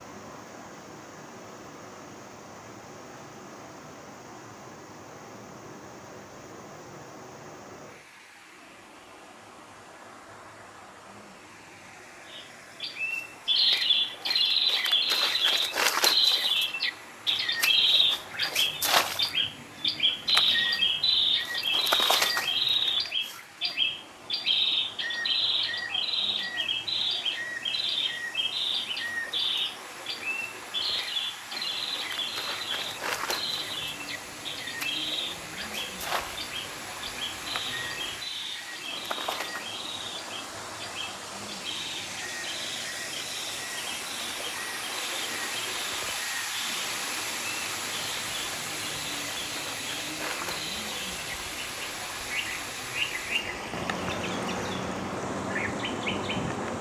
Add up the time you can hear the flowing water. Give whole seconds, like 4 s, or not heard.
57 s.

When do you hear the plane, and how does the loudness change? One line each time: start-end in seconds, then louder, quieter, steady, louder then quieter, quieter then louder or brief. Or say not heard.
not heard.